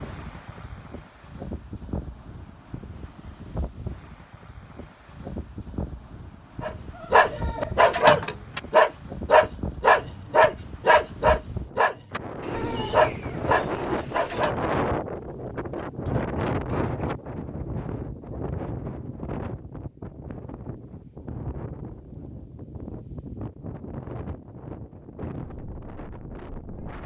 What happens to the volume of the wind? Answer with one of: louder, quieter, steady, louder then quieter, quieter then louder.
louder then quieter.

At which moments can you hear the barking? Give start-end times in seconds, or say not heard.
6.6-14.7.